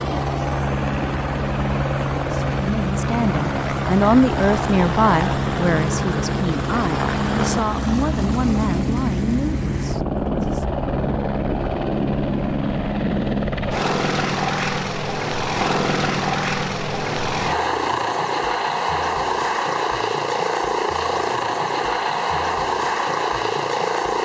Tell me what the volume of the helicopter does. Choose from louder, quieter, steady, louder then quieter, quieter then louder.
steady.